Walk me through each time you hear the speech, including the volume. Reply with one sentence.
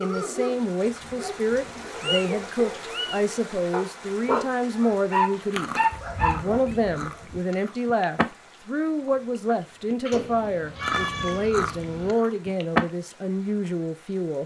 You can hear the speech from 0.0 to 14.4 s, at a steady volume.